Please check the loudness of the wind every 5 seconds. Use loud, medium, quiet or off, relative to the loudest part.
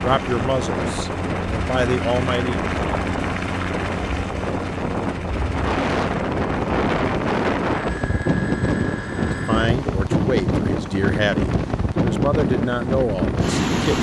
medium, loud, loud.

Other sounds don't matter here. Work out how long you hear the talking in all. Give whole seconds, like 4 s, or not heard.
7 s.